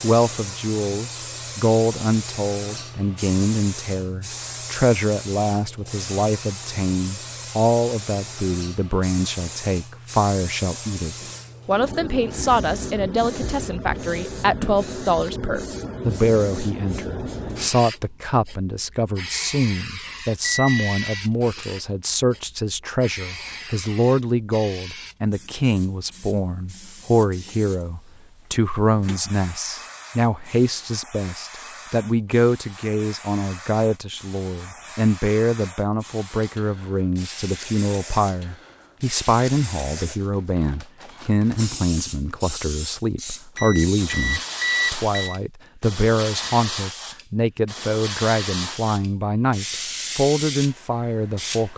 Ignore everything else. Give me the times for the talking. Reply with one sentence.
You can hear the talking from 0.0 to 51.7 s.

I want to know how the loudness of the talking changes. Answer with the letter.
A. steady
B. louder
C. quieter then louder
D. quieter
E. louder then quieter
A.